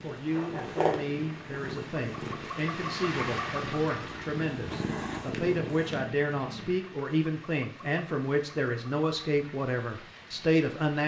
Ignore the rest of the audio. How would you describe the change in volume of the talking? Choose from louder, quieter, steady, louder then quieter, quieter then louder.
louder.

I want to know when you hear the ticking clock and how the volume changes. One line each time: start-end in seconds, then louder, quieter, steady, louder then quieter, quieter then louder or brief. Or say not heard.
not heard.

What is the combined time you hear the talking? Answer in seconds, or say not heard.
11 s.